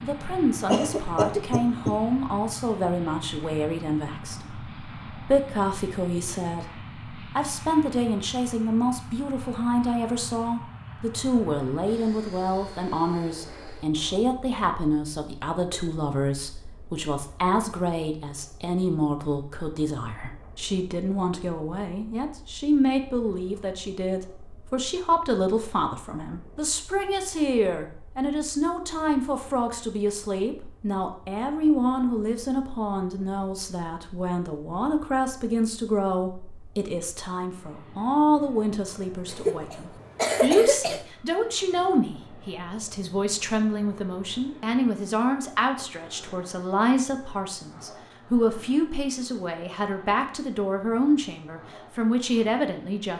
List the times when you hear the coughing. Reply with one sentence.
The coughing can be heard from 0.7 to 1.9 s and from 39.3 to 41.0 s.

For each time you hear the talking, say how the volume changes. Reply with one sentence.
The talking can be heard from 0.0 to 53.1 s, at a steady volume.